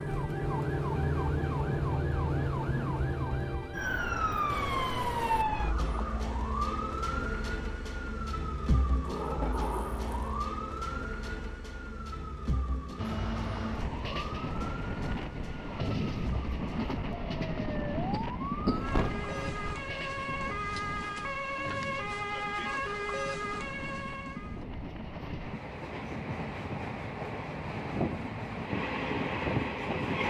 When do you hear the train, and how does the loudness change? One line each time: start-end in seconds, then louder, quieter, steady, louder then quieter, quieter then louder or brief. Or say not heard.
12.9-30.2 quieter then louder.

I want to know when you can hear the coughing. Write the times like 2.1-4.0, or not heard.
18.1-19.0.